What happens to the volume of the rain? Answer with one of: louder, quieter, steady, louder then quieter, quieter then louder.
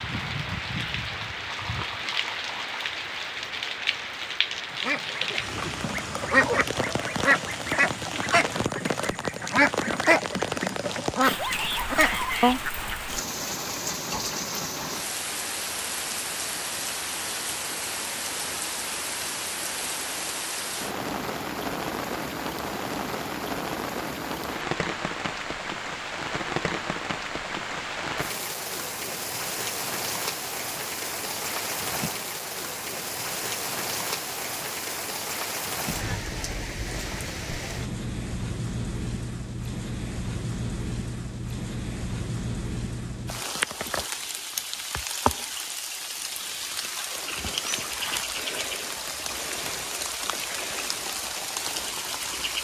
steady.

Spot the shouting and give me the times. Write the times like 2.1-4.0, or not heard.
11.3-12.6.